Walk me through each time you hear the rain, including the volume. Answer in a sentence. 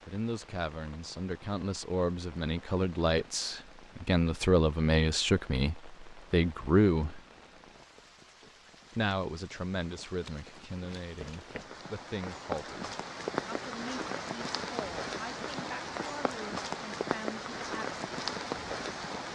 You can hear the rain from 0.0 to 19.3 s, getting louder.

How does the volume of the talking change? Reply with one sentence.
The volume of the talking goes up, then down.